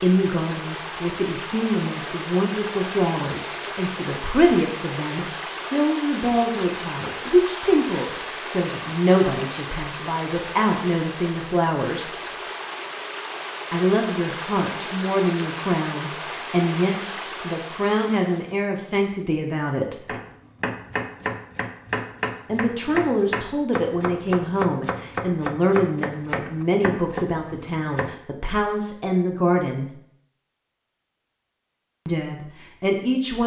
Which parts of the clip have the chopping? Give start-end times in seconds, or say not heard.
20.1-28.1.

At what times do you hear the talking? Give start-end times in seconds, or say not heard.
0.0-12.1, 13.7-20.1, 22.4-29.9, 32.0-33.4.